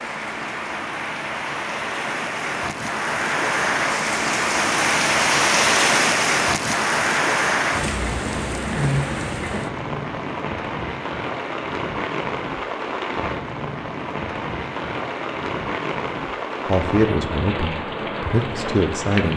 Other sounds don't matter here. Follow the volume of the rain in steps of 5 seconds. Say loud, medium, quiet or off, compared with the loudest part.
loud, loud, medium, medium.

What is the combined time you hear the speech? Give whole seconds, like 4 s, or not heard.
3 s.